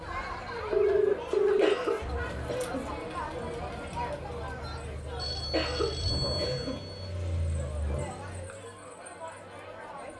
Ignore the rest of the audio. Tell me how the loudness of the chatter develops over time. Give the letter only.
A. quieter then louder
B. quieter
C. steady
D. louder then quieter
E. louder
B.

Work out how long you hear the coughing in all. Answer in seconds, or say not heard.
3 s.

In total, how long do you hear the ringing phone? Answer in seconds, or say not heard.
3 s.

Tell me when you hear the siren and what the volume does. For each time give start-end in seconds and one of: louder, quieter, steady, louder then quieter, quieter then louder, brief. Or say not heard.
not heard.